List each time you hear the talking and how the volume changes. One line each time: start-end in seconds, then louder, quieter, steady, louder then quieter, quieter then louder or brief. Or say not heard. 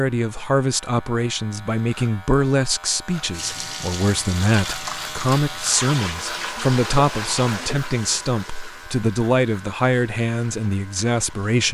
0.0-11.6 steady.